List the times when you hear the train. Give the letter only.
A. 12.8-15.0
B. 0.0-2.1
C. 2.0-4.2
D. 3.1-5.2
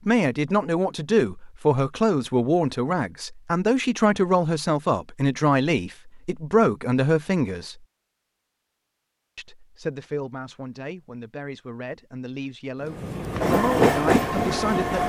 A.